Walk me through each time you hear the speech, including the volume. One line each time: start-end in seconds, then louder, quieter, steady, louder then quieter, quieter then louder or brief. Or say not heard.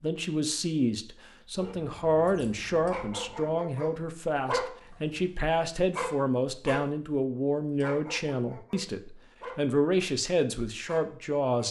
0.0-11.6 steady.